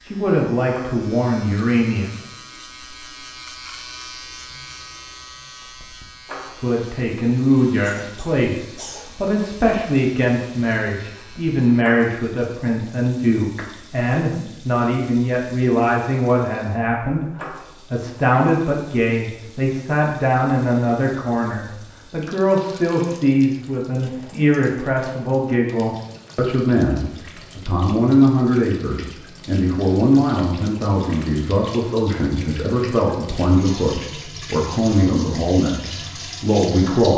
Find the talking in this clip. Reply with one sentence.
You can hear the talking from 0.0 to 2.1 s and from 6.6 to 37.1 s.